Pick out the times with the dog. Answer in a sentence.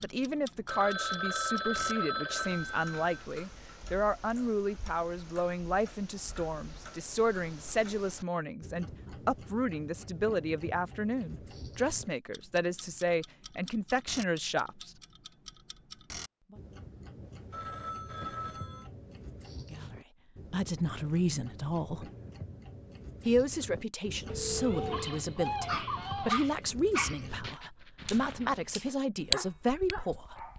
You can hear the dog from 24.5 to 30.5 s.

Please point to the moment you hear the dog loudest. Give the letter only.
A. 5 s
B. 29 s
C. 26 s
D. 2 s
C.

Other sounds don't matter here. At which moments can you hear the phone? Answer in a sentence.
The phone can be heard from 0.7 to 3.2 s, from 17.5 to 18.9 s and from 24.2 to 25.1 s.